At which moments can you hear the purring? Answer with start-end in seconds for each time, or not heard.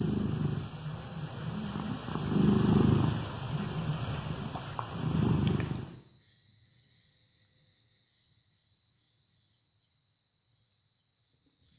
0.0-6.0.